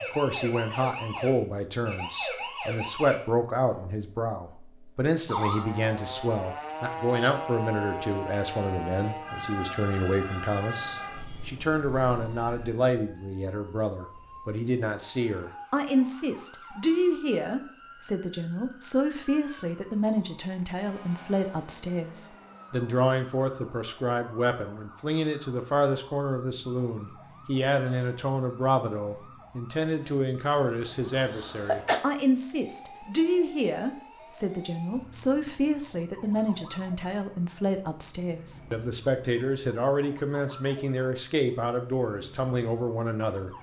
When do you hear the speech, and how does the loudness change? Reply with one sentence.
You can hear the speech from 0.0 to 43.5 s, at a steady volume.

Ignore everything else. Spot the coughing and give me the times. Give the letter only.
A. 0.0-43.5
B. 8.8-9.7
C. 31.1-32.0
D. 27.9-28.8
C.